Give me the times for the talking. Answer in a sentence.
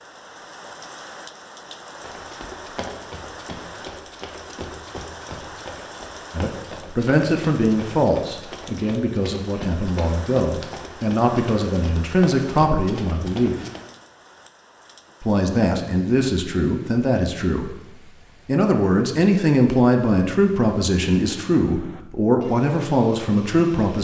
You can hear the talking from 6.3 to 13.6 s, from 15.2 to 17.8 s and from 18.4 to 23.9 s.